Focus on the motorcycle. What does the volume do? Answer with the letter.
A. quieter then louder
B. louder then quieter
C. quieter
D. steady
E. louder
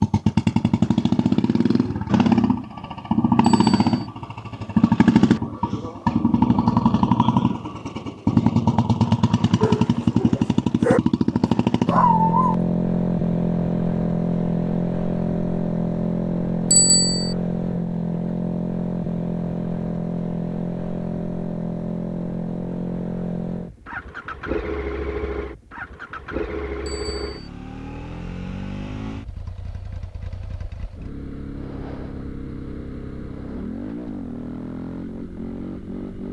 C.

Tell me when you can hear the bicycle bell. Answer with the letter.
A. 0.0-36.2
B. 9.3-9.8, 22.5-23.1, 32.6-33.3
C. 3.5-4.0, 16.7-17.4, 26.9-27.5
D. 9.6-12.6
C.